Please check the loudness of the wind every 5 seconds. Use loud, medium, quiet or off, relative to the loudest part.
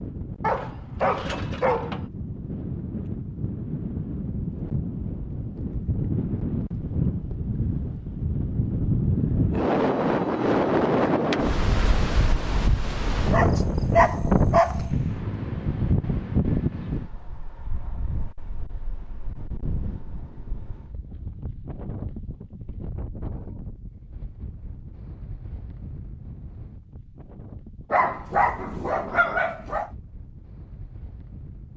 medium, loud, loud, medium, quiet, quiet, quiet.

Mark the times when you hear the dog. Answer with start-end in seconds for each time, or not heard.
0.4-2.0, 13.3-14.9, 27.9-29.9.